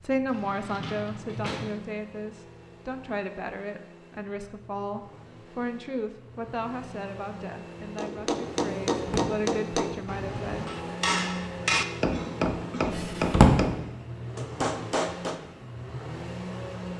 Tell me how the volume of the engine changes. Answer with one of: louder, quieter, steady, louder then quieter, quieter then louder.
louder.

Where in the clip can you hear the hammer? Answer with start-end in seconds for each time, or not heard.
8.0-15.4.